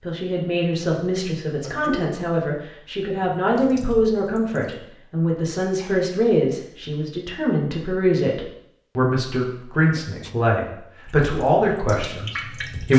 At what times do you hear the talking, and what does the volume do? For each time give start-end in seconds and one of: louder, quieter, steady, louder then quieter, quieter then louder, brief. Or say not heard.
0.1-12.9 steady.